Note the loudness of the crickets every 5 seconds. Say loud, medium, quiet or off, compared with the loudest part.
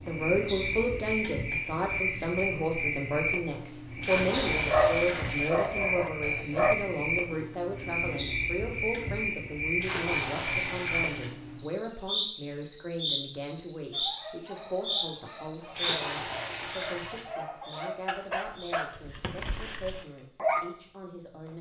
loud, loud, loud, medium, quiet.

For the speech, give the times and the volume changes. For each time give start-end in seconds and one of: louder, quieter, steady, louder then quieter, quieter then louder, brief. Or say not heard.
0.1-21.5 quieter.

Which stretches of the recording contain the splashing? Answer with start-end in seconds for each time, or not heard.
4.0-5.6, 9.8-11.3, 15.7-17.3.